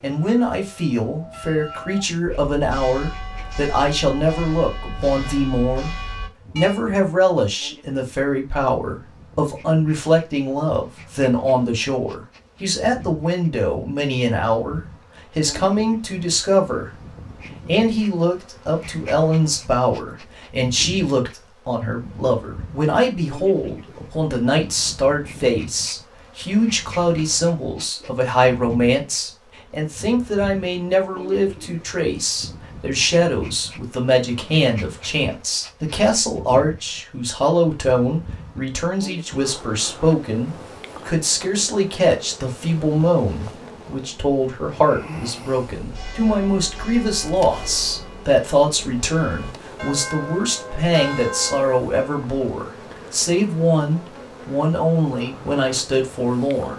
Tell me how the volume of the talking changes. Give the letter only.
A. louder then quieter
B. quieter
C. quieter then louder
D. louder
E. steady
E.